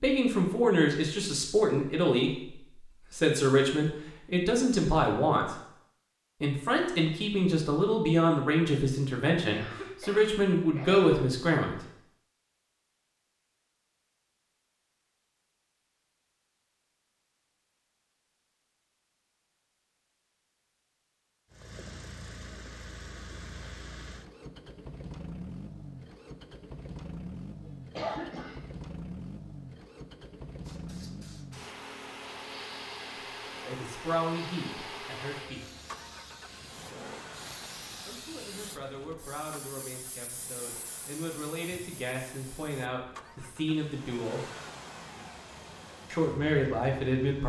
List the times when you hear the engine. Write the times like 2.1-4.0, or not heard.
21.5-47.4.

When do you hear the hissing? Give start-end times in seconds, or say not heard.
30.6-42.9.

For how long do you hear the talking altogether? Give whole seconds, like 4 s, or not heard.
21 s.